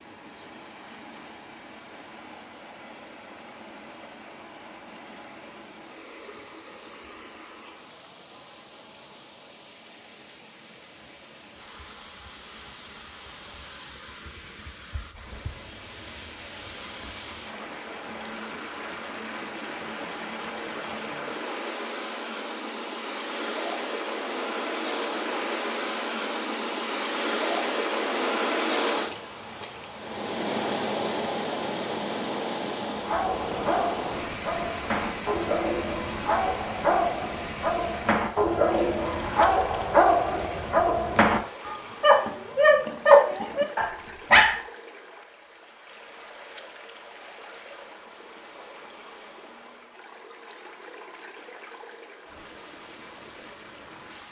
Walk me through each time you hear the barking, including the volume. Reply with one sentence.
The barking can be heard from 33.0 to 44.6 s, getting louder.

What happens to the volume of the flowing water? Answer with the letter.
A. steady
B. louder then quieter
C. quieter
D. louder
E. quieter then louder
B.